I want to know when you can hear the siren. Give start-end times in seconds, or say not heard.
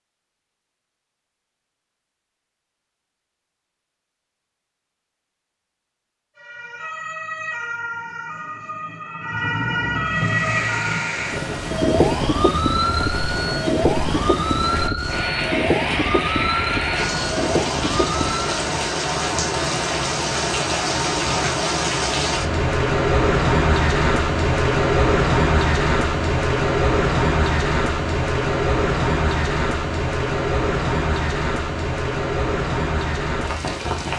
6.3-18.6.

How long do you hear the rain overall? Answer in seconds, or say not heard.
24 s.